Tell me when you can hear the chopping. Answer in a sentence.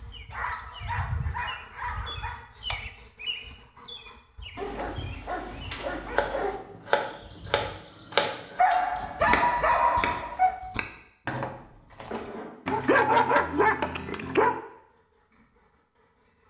You can hear the chopping from 6.1 to 13.9 s.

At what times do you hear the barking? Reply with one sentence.
The barking can be heard from 0.3 to 2.4 s, from 4.5 to 6.6 s, from 8.6 to 10.6 s and from 12.7 to 14.6 s.